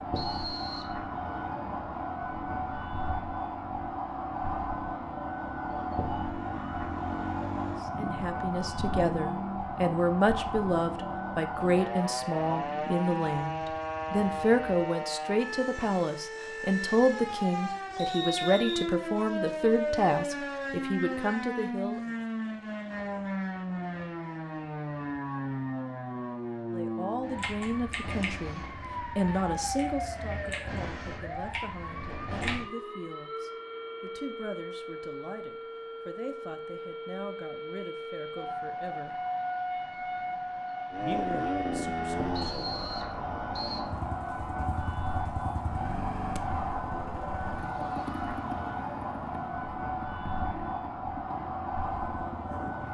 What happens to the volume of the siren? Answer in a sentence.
The loudness of the siren stays about the same.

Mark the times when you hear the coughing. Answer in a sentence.
The coughing can't be heard in this clip.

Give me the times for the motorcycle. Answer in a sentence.
The motorcycle can be heard from 0.0 to 14.8 s and from 40.9 to 52.8 s.